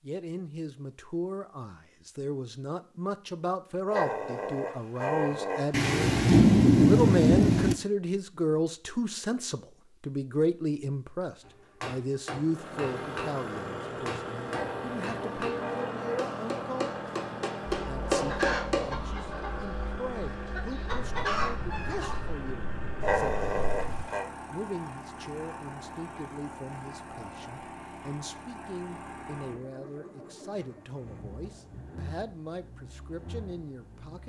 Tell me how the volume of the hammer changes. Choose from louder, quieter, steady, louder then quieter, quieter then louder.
louder.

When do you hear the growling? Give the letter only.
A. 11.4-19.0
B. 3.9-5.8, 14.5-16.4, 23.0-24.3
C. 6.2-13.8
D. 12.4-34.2
B.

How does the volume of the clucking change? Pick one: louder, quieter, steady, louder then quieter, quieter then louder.
quieter then louder.